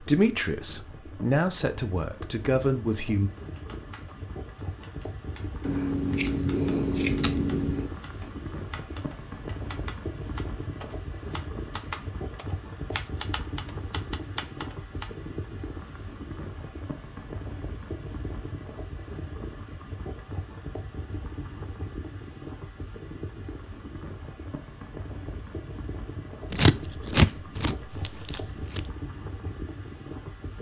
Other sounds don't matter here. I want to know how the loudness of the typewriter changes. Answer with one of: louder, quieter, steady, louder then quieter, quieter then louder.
louder.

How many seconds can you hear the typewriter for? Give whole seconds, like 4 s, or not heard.
12 s.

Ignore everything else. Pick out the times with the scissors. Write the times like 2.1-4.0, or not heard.
5.6-7.9, 26.5-28.9.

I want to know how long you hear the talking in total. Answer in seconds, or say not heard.
3 s.